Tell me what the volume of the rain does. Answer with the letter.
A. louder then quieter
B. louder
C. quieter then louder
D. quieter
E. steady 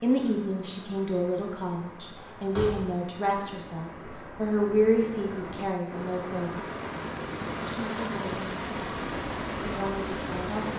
B.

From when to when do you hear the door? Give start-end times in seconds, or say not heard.
2.1-3.0.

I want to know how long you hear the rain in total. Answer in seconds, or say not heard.
11 s.